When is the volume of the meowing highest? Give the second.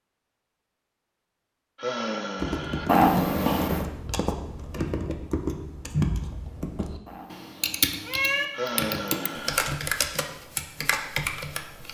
3 s.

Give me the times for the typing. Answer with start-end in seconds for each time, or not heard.
2.4-11.8.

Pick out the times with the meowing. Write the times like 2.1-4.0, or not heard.
2.9-3.9, 7.0-8.4.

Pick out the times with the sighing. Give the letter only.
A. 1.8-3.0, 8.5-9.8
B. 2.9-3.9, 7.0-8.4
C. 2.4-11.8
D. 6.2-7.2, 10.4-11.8
A.